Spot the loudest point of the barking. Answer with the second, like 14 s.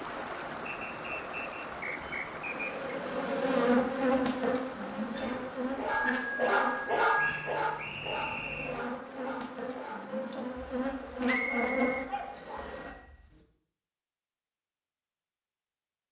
7 s.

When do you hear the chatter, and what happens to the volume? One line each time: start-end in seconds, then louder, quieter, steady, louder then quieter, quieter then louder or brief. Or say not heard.
not heard.